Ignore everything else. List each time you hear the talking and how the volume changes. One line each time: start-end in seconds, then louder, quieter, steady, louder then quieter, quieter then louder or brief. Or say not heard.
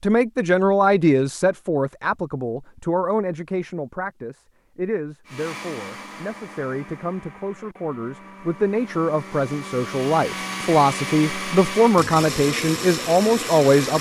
0.0-13.9 quieter then louder.